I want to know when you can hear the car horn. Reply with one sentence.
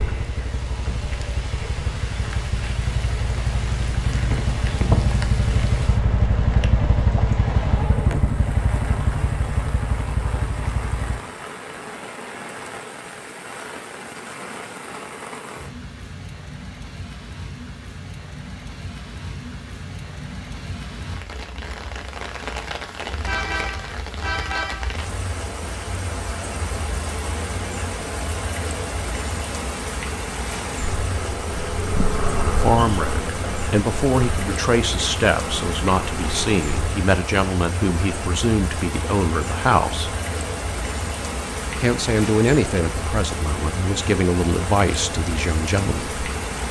You can hear the car horn from 23.2 to 24.9 s.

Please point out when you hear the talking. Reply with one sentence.
The talking can be heard from 32.2 to 40.1 s and from 41.8 to 46.2 s.